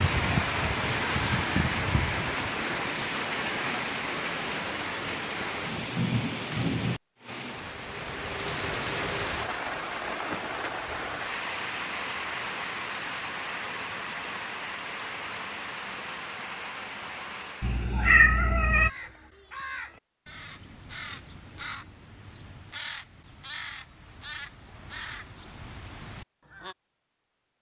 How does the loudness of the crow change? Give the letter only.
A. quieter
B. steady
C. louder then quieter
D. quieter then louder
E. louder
B.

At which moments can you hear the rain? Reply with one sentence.
You can hear the rain from 0.0 to 17.9 s.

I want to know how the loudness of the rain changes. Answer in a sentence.
The loudness of the rain goes down.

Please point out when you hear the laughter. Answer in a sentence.
You can't hear the laughter here.